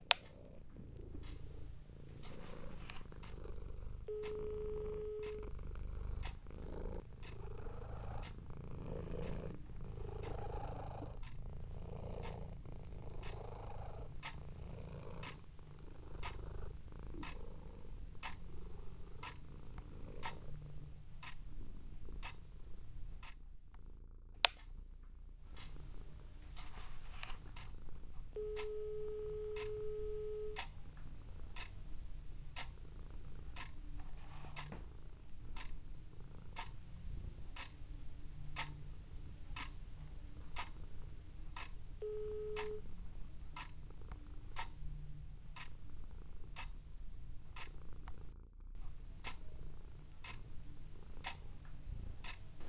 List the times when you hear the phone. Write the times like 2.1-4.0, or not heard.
4.0-5.5, 28.4-30.6, 42.0-42.8.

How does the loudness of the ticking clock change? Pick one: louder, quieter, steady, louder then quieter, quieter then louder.
louder.